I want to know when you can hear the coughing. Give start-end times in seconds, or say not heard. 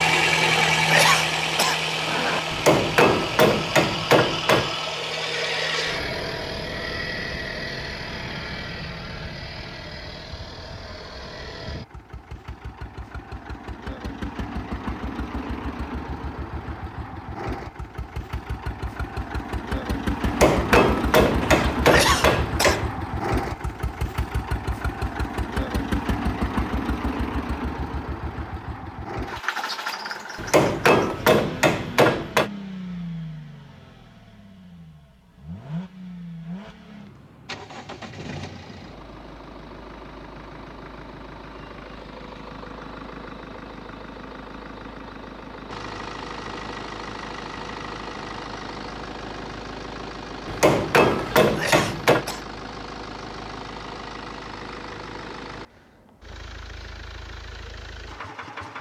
0.4-2.4, 21.4-22.8, 51.1-52.5.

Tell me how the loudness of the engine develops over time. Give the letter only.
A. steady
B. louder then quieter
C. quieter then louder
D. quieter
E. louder
D.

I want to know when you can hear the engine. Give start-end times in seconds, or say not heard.
0.0-58.7.